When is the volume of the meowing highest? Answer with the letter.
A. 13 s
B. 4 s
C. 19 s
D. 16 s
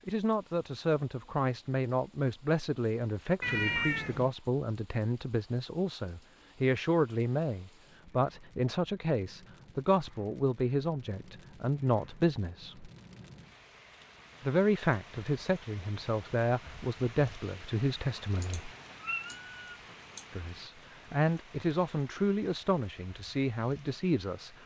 B.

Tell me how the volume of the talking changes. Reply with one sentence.
The volume of the talking stays about the same.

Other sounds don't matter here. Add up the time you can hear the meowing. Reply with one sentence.
The meowing can be heard for 3 seconds in total.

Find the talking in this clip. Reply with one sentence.
You can hear the talking from 0.1 to 12.9 s, from 14.4 to 18.7 s and from 20.3 to 24.5 s.